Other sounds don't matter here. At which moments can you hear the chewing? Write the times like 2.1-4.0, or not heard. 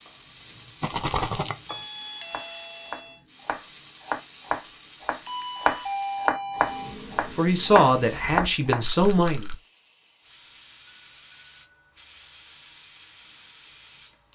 not heard.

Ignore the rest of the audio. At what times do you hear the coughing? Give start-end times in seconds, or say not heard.
not heard.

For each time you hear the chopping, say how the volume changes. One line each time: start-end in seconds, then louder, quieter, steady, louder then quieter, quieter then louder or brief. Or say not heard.
0.1-8.8 louder.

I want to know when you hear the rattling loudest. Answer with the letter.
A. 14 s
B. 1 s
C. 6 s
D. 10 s
B.